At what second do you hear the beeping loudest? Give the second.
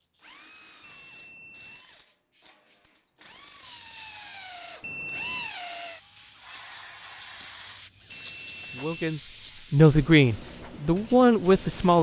5 s.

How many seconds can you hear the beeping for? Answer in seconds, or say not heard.
3 s.